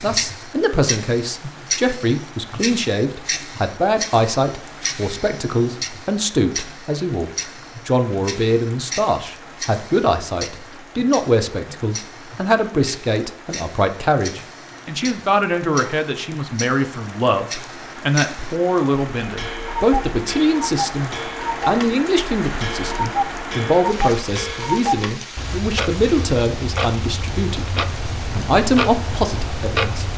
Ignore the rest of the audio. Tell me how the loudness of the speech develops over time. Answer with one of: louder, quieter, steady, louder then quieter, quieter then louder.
steady.